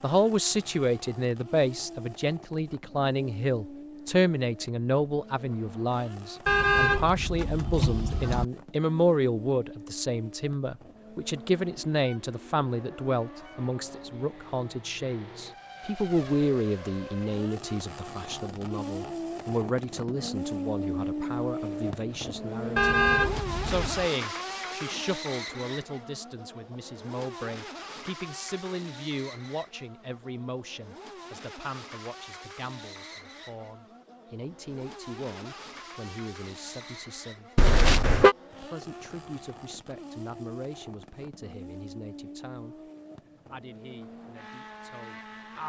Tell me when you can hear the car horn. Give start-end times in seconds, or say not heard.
6.5-8.4, 22.8-24.1, 37.5-38.4.